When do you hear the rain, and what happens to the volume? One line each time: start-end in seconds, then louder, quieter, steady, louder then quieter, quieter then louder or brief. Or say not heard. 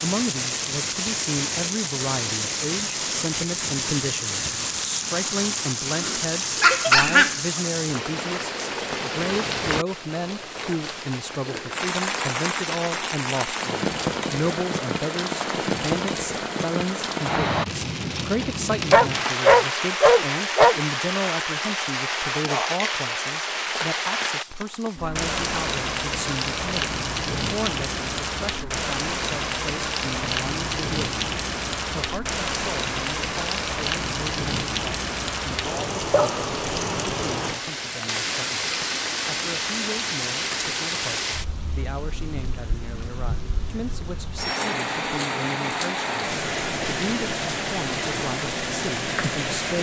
0.0-49.7 steady.